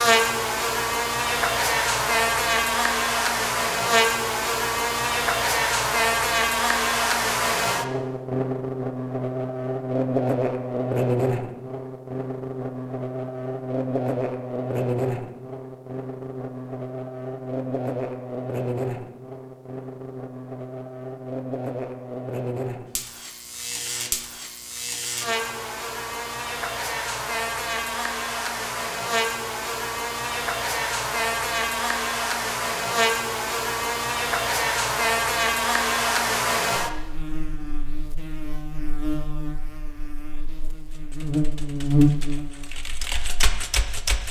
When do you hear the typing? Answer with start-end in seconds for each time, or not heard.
40.9-44.2.